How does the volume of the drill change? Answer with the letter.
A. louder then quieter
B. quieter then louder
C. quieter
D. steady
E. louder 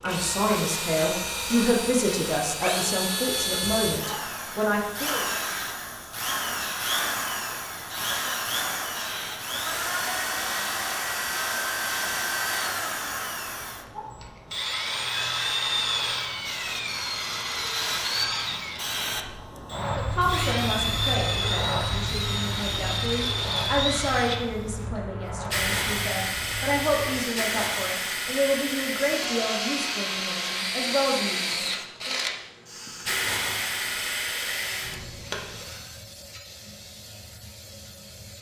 D.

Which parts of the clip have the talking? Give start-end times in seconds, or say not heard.
0.0-5.2, 19.9-32.1.